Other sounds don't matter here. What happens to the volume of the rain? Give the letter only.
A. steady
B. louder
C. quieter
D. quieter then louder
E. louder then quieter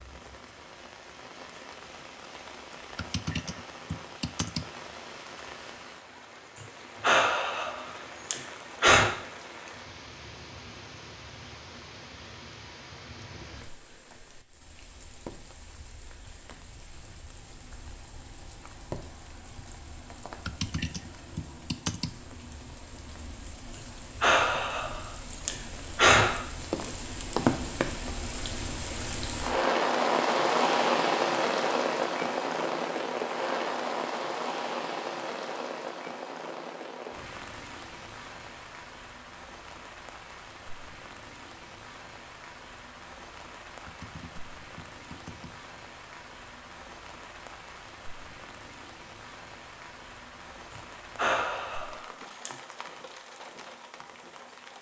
E.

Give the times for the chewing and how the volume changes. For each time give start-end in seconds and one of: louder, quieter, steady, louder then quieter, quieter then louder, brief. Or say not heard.
not heard.